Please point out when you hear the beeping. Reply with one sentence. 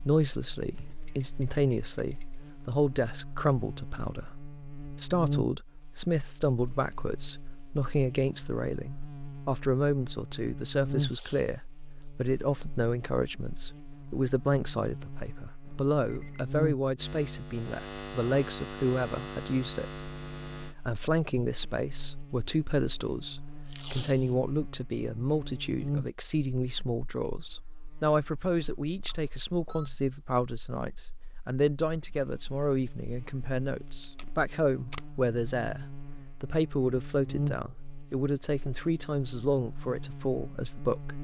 You can hear the beeping from 0.7 to 2.4 s, from 15.7 to 16.6 s and from 29.1 to 29.9 s.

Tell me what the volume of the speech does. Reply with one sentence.
The volume of the speech stays about the same.